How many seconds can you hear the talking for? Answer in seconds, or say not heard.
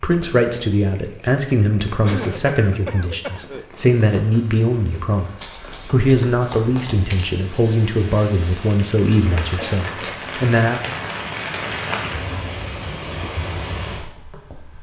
11 s.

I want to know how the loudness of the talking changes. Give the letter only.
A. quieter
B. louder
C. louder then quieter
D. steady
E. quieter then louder
D.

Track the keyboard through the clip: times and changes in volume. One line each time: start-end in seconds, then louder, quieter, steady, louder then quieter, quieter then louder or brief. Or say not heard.
not heard.